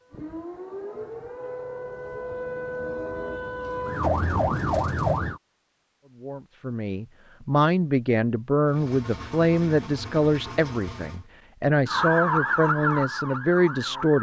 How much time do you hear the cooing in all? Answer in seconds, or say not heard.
not heard.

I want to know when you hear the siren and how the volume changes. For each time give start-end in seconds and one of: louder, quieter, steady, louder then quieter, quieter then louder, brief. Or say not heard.
0.0-5.4 louder
11.8-14.1 brief.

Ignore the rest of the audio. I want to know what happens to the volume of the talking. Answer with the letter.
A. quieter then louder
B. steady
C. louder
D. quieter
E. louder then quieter
B.